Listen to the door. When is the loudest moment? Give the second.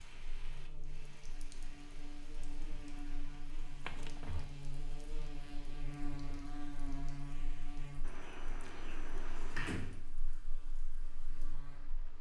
10 s.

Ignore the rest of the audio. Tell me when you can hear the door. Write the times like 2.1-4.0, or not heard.
3.9-4.5, 8.0-10.1.